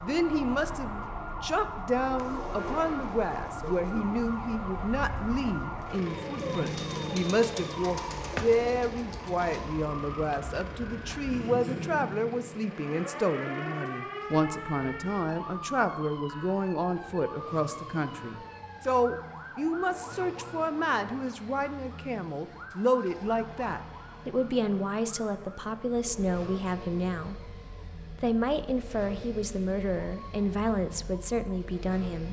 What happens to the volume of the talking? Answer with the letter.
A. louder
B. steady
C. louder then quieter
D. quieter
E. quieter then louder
B.